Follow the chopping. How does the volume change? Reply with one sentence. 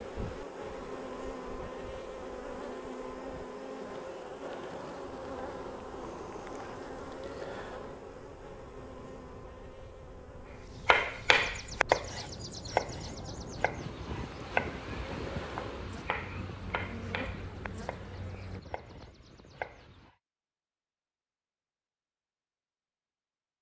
The loudness of the chopping goes down.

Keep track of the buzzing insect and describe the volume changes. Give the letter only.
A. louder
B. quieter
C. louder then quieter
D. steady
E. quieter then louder
E.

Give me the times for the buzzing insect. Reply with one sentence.
You can hear the buzzing insect from 0.0 to 18.6 s.